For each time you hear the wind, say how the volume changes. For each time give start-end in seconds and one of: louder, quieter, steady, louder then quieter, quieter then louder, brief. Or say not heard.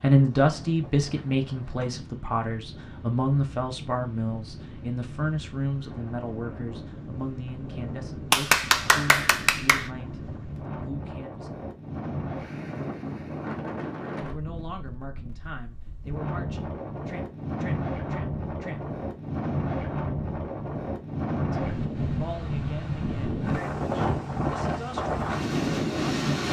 0.1-26.4 louder.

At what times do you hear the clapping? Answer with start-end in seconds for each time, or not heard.
8.3-9.9.